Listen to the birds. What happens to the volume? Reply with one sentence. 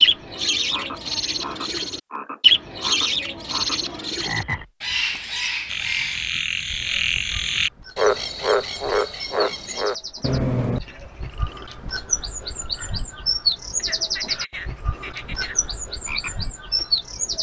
The loudness of the birds goes down, then up.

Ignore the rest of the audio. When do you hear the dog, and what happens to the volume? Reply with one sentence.
You can't hear the dog here.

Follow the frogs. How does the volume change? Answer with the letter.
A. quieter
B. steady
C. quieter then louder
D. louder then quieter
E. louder
D.